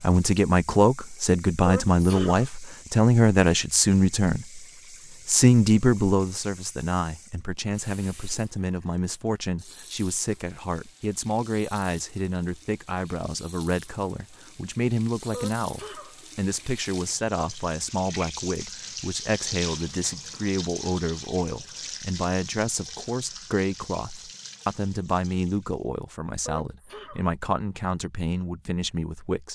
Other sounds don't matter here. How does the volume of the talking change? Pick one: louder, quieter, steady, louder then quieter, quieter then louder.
quieter.